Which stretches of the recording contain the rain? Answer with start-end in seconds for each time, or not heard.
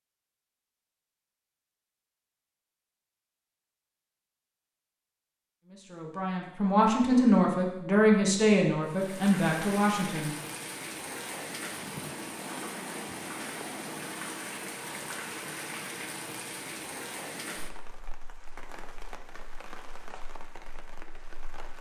8.8-21.7.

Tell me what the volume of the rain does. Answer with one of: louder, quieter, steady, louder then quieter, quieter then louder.
quieter.